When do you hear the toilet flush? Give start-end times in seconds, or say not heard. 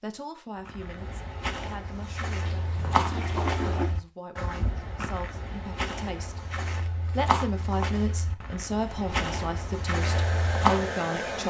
2.5-4.0.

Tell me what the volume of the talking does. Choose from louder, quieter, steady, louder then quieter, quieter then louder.
louder.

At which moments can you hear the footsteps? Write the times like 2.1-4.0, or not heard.
0.6-11.0.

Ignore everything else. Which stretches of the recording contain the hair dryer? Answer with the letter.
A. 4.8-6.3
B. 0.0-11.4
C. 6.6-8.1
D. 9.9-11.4
D.